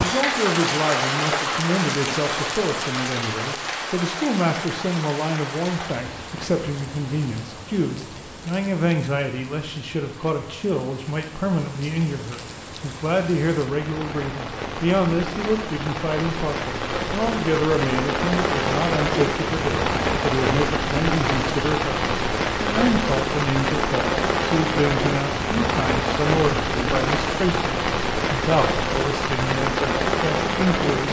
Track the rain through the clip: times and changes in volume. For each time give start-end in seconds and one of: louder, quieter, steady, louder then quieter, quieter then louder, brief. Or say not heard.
0.0-31.0 quieter then louder.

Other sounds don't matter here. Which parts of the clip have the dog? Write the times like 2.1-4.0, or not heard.
not heard.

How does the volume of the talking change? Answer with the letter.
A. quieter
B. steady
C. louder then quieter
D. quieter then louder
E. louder
B.